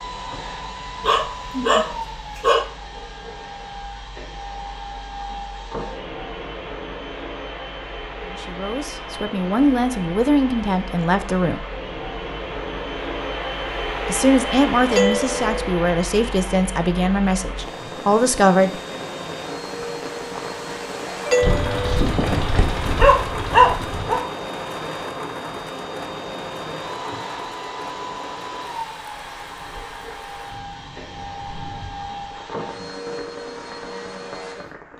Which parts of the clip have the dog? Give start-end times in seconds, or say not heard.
1.0-2.6, 21.4-24.2.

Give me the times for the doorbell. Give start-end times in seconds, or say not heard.
14.9-15.6, 21.2-22.1.